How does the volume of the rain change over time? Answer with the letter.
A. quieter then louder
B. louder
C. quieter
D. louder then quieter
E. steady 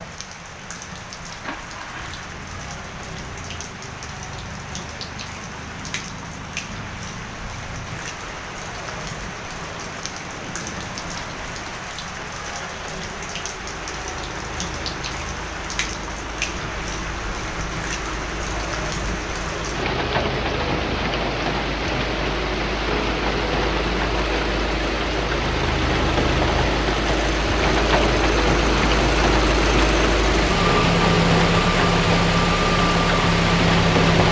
B.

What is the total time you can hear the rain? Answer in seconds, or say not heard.
34 s.